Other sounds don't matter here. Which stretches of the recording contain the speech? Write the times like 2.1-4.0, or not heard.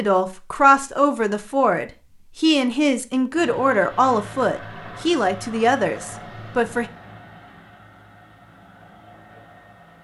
0.0-6.8.